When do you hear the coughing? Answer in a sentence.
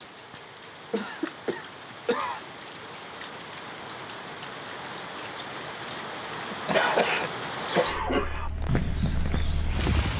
The coughing can be heard from 0.9 to 2.5 s and from 6.5 to 8.5 s.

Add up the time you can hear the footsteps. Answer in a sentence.
The footsteps can be heard for 2 seconds in total.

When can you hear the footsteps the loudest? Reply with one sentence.
The loudest moment of the footsteps is at 9 seconds.